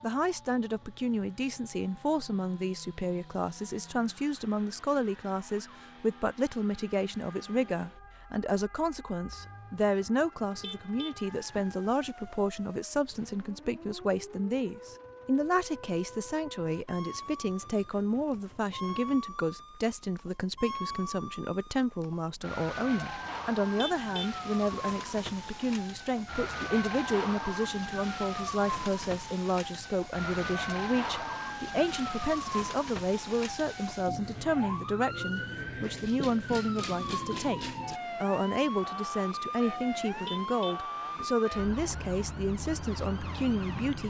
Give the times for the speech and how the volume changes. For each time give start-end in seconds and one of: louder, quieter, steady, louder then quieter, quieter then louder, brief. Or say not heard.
0.0-44.0 steady.